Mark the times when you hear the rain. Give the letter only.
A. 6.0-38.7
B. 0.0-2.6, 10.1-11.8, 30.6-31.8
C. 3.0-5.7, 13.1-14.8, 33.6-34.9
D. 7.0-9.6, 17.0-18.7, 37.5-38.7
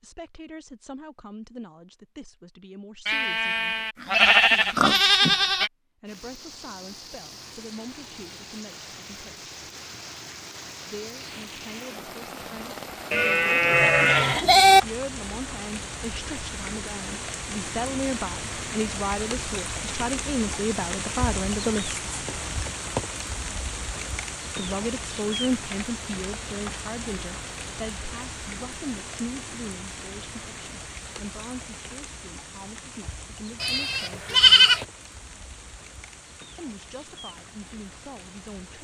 A.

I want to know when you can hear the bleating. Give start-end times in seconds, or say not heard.
3.0-5.7, 13.1-14.8, 33.6-34.9.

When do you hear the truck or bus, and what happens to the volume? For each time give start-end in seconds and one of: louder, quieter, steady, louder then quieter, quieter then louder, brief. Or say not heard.
not heard.